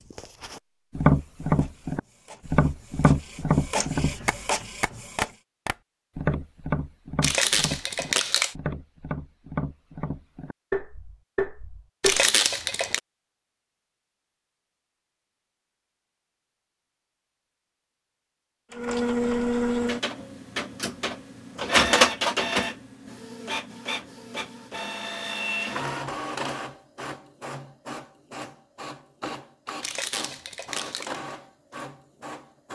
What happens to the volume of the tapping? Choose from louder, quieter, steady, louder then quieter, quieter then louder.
quieter.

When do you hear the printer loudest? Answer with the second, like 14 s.
22 s.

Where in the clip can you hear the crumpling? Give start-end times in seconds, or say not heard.
7.2-8.6, 12.0-13.0, 29.8-31.1.